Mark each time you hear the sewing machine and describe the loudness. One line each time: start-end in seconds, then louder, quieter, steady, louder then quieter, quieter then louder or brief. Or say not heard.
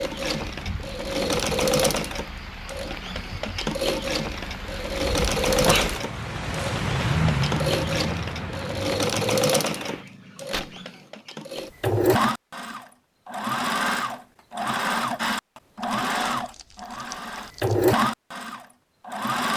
0.0-19.5 steady.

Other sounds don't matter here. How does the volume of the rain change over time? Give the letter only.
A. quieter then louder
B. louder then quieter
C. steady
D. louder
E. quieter
B.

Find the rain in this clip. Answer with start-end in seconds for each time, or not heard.
0.0-10.1.